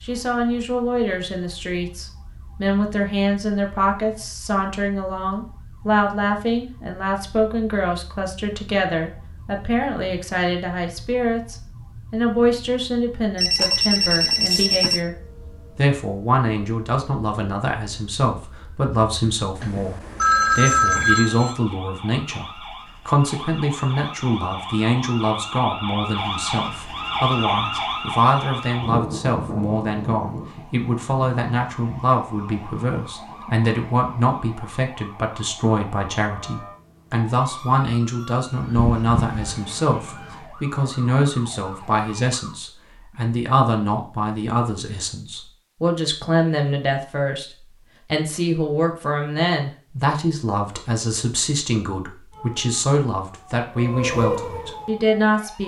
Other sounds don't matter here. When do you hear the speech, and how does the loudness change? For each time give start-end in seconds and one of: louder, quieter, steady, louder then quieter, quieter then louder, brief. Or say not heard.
0.0-55.6 steady.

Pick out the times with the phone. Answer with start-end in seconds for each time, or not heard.
13.3-15.0, 19.6-21.6, 38.8-39.4.